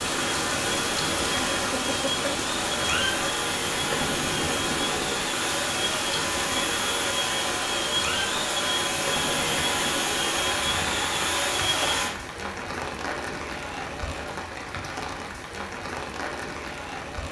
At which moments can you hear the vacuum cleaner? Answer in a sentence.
The vacuum cleaner can be heard from 0.0 to 12.2 s.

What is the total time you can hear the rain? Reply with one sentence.
The rain can be heard for 17 seconds in total.